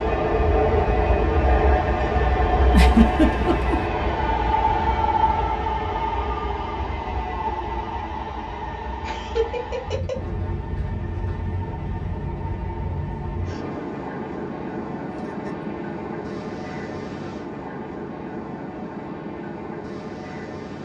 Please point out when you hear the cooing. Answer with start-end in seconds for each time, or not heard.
not heard.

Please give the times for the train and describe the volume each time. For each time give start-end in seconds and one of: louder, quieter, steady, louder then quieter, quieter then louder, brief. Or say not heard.
0.0-20.8 quieter.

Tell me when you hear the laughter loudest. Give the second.
3 s.